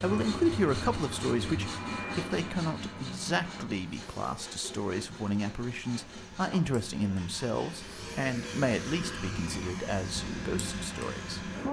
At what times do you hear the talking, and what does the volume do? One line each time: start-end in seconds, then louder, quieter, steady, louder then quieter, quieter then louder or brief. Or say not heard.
0.0-11.6 quieter.